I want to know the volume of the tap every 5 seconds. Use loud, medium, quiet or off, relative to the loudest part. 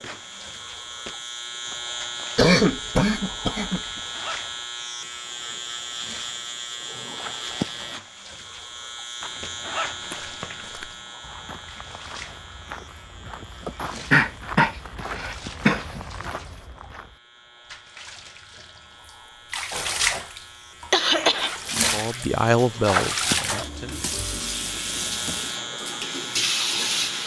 quiet, quiet, quiet, medium, loud, loud.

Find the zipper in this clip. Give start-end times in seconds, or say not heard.
3.7-4.7, 9.2-10.7, 21.1-21.8.